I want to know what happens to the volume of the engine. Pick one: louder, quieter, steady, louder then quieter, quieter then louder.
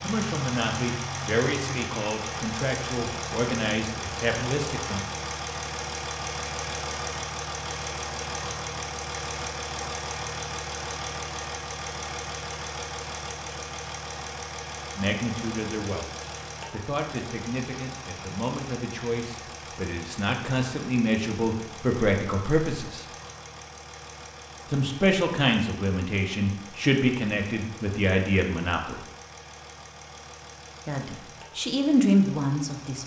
quieter.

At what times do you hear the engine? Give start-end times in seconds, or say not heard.
0.0-33.0.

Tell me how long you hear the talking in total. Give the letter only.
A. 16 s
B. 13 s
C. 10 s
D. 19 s
D.